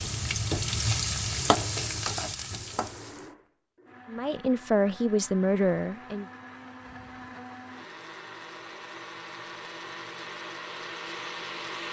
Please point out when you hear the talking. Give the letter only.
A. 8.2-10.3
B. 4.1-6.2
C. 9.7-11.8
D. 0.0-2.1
B.